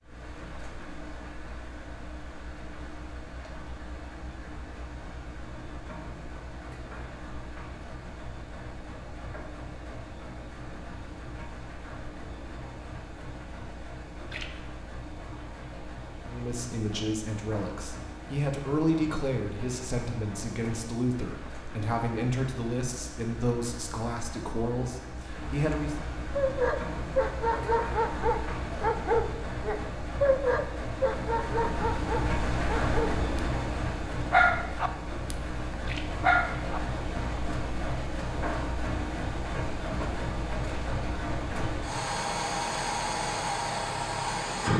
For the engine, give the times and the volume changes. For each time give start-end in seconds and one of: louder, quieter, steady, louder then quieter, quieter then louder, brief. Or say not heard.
0.0-44.7 louder.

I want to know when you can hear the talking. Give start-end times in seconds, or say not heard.
16.3-25.9.